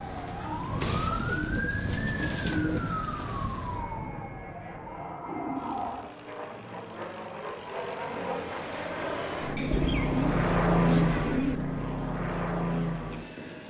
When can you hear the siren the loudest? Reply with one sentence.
The volume of the siren peaks at 1 second.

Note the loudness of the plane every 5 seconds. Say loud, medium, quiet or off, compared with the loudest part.
quiet, medium, loud.